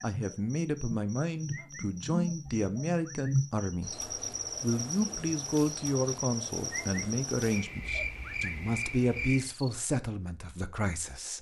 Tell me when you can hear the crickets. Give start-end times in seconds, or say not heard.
0.0-9.7.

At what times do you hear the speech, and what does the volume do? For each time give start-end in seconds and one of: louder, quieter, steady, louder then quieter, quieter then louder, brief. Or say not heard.
0.0-11.3 steady.